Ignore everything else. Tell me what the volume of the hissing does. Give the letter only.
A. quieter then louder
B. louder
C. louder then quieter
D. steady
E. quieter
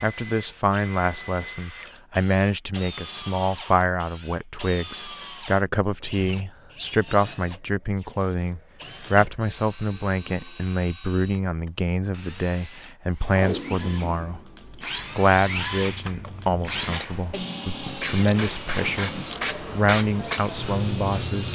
B.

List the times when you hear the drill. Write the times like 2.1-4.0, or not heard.
0.0-21.4.